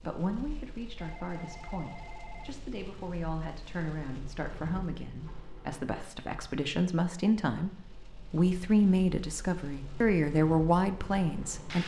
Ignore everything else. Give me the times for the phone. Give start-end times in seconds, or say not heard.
1.0-2.5.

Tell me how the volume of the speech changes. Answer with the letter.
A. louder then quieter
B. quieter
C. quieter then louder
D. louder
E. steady
D.